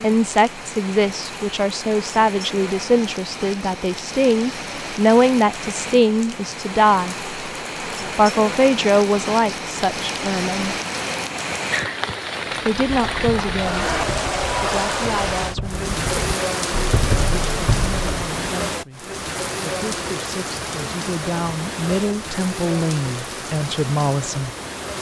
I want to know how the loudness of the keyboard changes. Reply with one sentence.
The loudness of the keyboard goes up.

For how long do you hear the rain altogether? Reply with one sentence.
The rain can be heard for 25 seconds in total.